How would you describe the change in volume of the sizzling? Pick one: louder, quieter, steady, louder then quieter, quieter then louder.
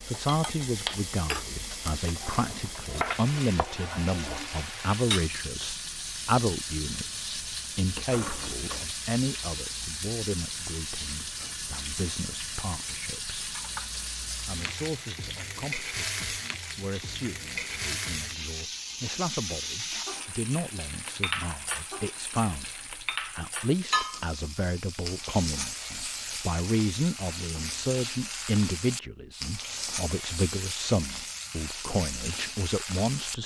steady.